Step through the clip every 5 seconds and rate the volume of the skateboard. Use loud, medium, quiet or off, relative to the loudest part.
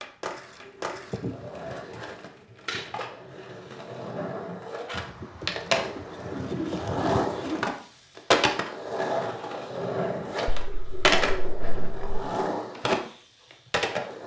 medium, loud, loud.